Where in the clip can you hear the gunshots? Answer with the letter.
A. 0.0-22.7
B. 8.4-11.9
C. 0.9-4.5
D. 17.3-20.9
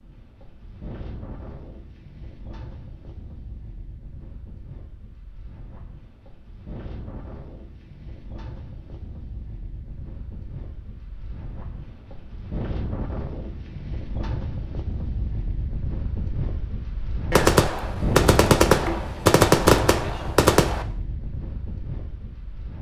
D.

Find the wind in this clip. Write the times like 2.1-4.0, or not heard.
0.0-22.7.